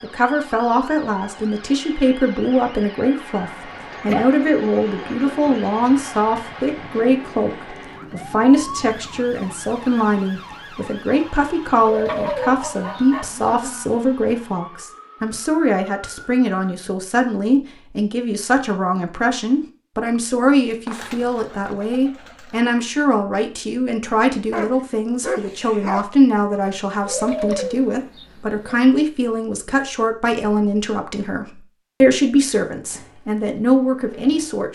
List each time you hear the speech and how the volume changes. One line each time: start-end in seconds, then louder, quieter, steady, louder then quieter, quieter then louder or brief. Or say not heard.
0.0-34.7 steady.